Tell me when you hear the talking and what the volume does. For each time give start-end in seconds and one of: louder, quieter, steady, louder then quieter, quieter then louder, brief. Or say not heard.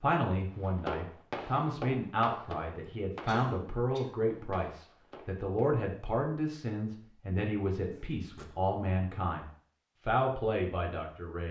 0.0-9.4 steady
10.1-11.4 brief.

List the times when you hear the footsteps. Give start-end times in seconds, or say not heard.
not heard.